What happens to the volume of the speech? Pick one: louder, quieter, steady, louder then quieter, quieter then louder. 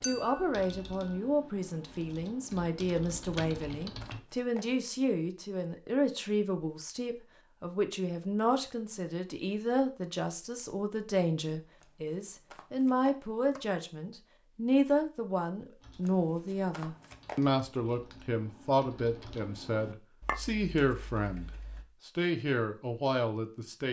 steady.